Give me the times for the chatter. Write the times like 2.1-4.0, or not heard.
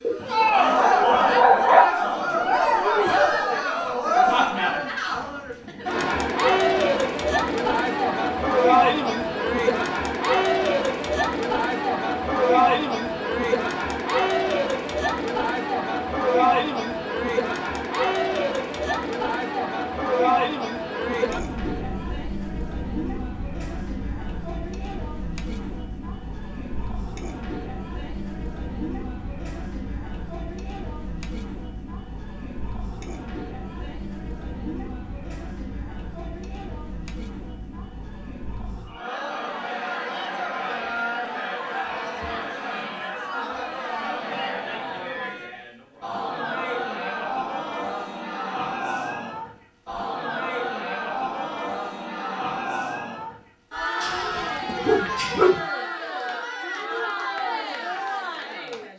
0.1-58.9.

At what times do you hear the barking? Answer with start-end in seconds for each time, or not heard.
0.0-1.9, 54.0-55.6.